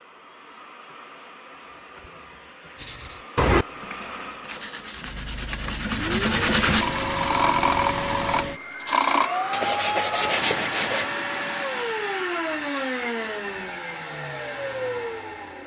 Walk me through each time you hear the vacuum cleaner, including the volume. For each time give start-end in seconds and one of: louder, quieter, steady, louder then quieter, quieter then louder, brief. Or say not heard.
0.0-15.6 louder.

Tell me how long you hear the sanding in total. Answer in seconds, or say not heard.
8 s.